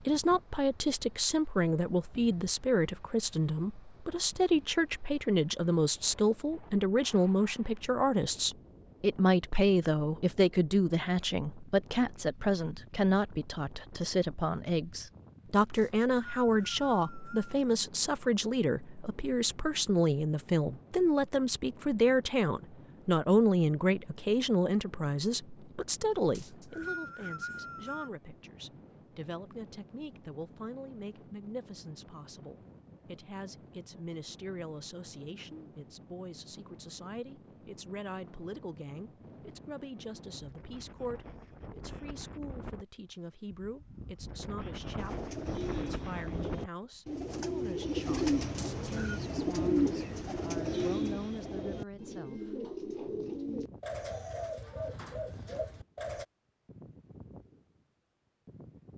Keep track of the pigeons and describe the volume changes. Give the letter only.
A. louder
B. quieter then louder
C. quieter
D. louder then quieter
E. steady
D.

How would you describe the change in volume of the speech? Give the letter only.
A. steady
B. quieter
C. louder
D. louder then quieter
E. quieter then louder
B.